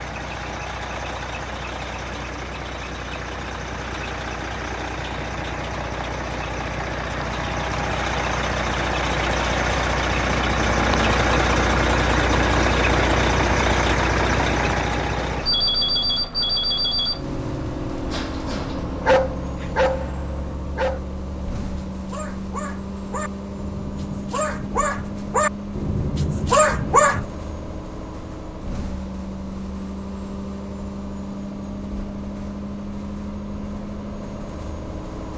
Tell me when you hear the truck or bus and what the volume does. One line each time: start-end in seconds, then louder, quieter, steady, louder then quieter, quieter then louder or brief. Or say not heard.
0.0-35.3 louder then quieter.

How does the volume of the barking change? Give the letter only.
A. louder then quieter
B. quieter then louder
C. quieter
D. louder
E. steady
B.